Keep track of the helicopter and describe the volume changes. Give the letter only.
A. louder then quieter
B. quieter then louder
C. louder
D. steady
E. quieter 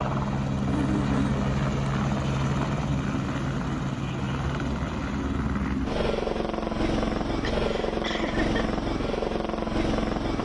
D.